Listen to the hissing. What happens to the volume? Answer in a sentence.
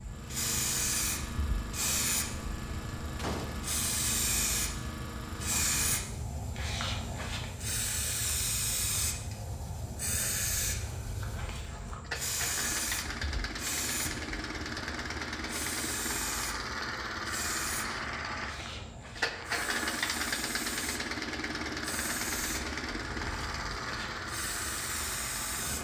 The loudness of the hissing goes down.